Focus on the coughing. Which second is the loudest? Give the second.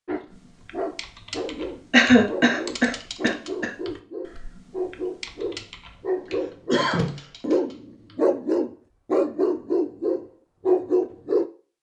2 s.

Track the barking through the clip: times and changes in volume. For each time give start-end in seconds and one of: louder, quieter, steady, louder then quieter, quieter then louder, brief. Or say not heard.
0.1-11.4 louder.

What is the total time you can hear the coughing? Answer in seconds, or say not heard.
2 s.